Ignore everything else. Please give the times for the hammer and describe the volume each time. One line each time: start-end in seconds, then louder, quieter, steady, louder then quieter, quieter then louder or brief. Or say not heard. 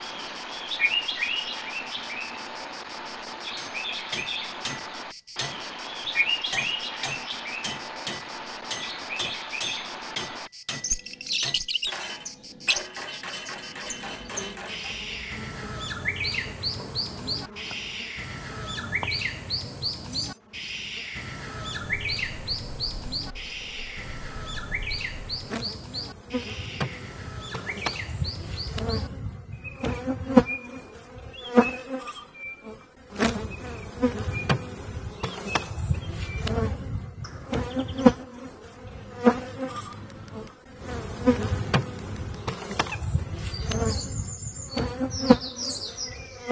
3.5-15.1 steady.